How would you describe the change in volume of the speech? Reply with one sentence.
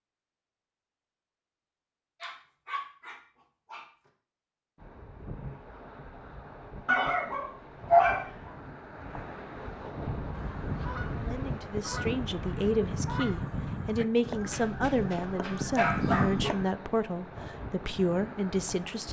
The loudness of the speech stays about the same.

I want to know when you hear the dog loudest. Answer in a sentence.
The volume of the dog peaks at 8 seconds.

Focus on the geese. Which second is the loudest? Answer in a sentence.
The volume of the geese peaks at 16 seconds.